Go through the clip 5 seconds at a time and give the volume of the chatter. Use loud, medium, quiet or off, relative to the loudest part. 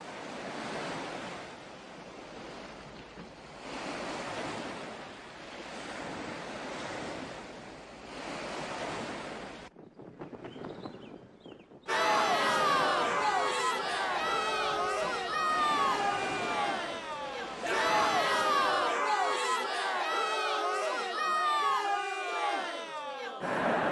off, off, loud, loud, loud.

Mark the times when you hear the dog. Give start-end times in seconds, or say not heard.
not heard.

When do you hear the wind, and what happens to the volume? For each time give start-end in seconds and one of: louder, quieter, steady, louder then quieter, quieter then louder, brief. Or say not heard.
0.0-19.1 steady.